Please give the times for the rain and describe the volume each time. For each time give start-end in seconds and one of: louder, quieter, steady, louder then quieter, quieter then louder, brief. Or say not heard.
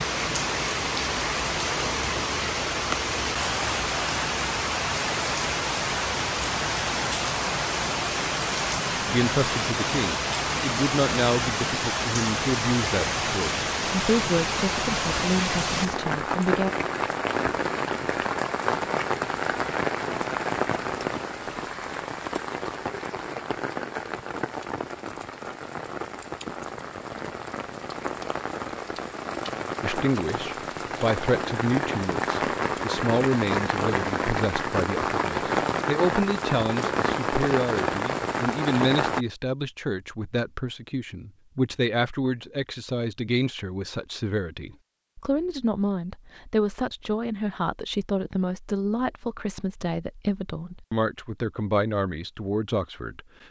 0.0-39.2 quieter then louder.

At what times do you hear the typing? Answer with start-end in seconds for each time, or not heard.
not heard.